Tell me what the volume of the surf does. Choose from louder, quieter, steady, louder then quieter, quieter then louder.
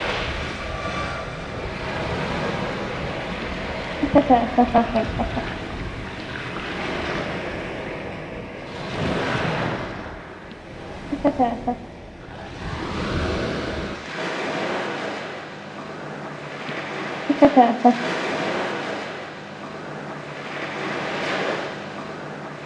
steady.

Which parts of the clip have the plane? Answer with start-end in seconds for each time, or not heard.
0.1-1.7.